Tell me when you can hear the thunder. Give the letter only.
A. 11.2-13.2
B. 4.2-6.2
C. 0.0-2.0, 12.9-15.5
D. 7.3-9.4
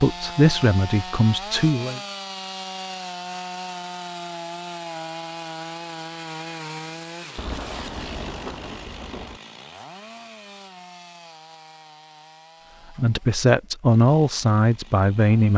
D.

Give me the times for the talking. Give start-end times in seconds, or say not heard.
0.0-2.0, 12.9-15.5.